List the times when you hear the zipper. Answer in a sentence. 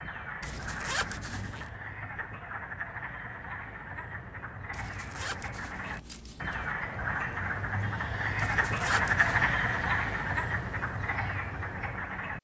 The zipper can be heard from 0.4 to 1.7 s, from 4.7 to 6.8 s and from 8.3 to 9.5 s.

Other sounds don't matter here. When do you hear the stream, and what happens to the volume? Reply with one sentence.
You can't hear the stream here.